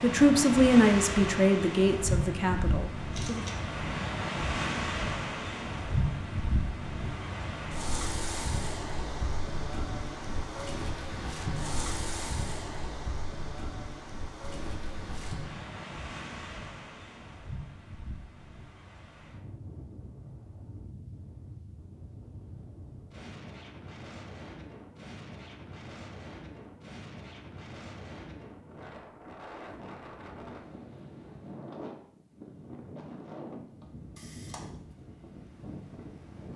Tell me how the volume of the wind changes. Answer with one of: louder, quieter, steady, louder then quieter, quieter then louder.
quieter.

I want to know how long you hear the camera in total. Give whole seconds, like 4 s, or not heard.
2 s.